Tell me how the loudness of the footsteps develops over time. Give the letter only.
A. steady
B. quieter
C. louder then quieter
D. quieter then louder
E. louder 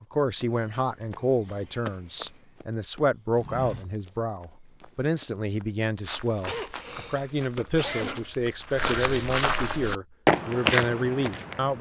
E.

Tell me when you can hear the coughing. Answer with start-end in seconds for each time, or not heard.
6.5-8.5.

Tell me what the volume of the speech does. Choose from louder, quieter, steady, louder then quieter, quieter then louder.
steady.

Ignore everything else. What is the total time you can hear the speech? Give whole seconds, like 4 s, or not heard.
12 s.